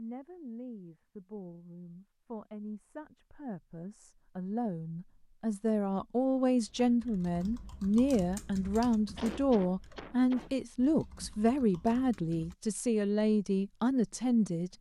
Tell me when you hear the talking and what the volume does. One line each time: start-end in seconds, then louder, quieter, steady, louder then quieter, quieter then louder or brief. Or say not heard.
0.0-14.7 louder.